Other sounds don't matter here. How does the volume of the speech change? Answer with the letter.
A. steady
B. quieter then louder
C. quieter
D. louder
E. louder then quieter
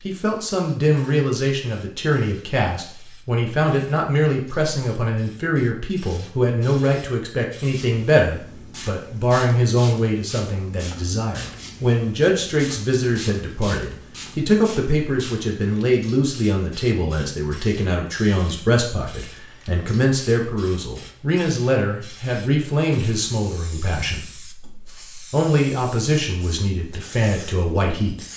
A.